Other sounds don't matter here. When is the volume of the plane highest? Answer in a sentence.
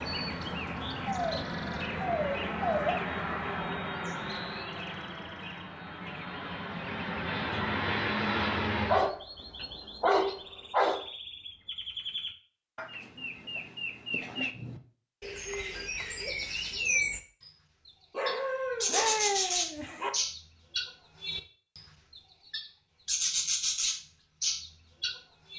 The loudest moment of the plane is at 8 seconds.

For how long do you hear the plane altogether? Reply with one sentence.
The plane can be heard for 9 seconds in total.